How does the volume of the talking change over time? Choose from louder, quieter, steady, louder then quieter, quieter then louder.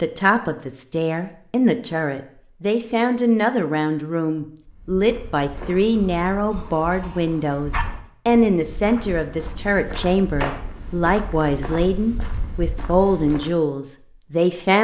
steady.